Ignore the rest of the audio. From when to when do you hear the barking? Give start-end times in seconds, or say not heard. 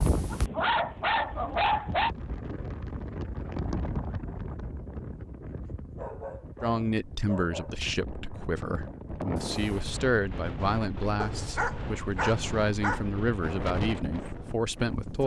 0.3-2.1, 6.0-7.8, 11.2-13.1.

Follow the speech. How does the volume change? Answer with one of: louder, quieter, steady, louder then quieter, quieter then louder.
steady.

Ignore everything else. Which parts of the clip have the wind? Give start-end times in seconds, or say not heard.
0.0-15.2.